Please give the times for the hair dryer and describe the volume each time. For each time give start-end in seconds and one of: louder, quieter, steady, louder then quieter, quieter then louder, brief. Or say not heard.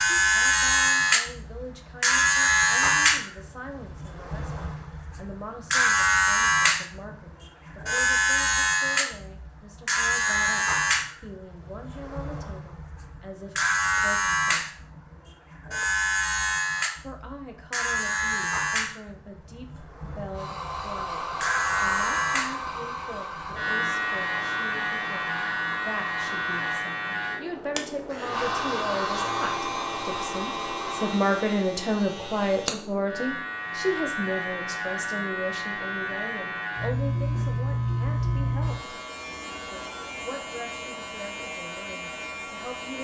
20.3-26.6 quieter
28.3-31.2 brief.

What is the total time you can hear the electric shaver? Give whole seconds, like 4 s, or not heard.
43 s.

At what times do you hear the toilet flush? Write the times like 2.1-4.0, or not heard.
not heard.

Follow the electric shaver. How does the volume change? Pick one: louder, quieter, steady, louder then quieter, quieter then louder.
quieter.